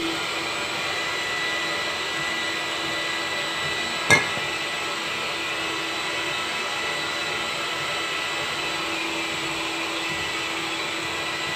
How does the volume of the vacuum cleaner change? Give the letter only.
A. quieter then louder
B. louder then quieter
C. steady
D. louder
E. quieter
C.